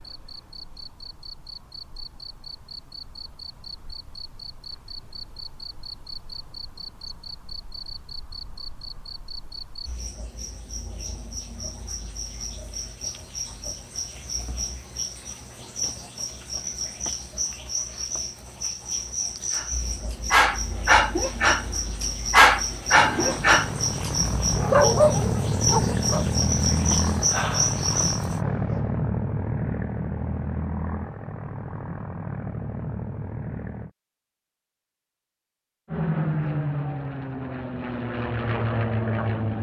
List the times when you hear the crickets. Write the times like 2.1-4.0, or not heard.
0.0-28.4.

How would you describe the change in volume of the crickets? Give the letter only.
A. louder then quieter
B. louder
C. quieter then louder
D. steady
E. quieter
B.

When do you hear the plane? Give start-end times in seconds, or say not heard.
22.9-33.9, 35.9-39.5.